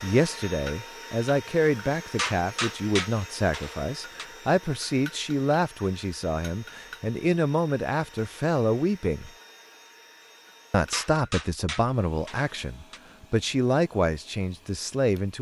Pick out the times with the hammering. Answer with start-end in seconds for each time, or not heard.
2.1-4.2, 10.9-13.0.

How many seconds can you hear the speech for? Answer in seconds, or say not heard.
14 s.